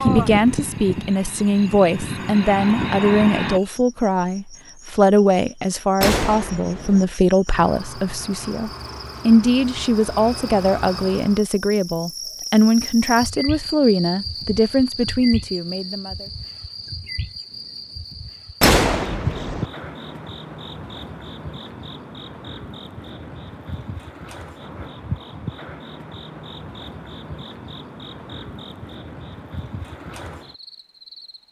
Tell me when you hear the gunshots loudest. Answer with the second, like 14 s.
19 s.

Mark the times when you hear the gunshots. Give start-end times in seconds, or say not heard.
6.0-7.0, 18.6-19.6.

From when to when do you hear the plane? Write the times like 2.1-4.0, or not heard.
0.0-3.6.